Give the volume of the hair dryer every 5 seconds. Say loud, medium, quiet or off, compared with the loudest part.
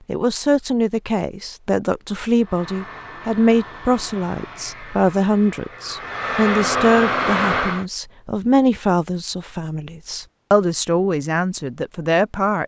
quiet, loud, off.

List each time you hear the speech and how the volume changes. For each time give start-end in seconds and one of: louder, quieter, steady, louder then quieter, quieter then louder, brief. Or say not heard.
0.1-12.6 steady.